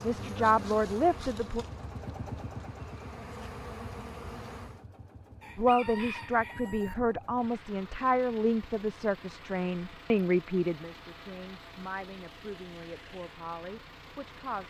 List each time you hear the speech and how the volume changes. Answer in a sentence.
The speech can be heard briefly from 0.0 to 1.6 s; and from 5.5 to 14.6 s, getting quieter.